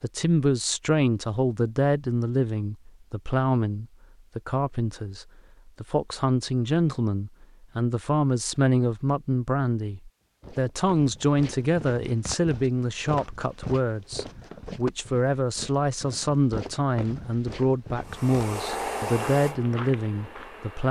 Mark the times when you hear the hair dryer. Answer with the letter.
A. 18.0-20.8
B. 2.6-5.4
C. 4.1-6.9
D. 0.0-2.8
A.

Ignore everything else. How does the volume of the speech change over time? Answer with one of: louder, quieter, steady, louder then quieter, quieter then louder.
steady.